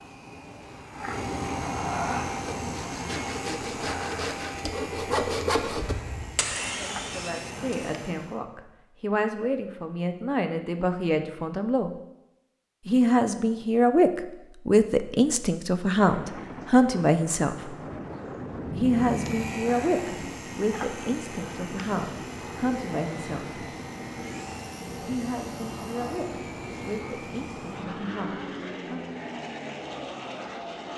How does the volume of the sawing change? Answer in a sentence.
The loudness of the sawing goes up, then down.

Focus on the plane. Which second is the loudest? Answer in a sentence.
The volume of the plane peaks at 2 seconds.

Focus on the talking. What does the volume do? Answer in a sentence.
The loudness of the talking goes up, then down.